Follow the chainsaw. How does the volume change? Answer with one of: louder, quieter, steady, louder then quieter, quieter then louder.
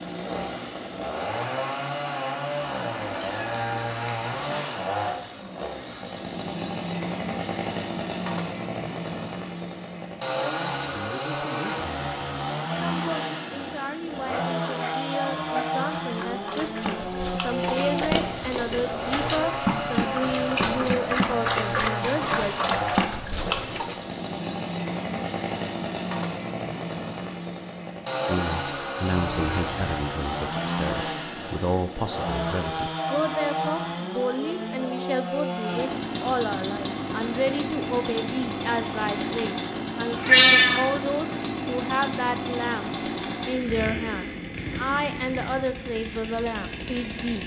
steady.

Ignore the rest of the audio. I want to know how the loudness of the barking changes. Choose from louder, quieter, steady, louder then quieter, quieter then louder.
louder.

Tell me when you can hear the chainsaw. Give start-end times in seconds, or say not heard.
0.0-47.4.